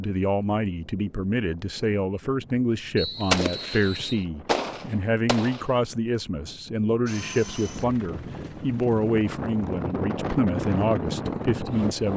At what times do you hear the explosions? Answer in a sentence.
The explosions can be heard from 3.3 to 5.7 s.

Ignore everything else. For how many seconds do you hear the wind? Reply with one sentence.
The wind can be heard for 12 seconds in total.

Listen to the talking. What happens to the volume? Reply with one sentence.
The loudness of the talking stays about the same.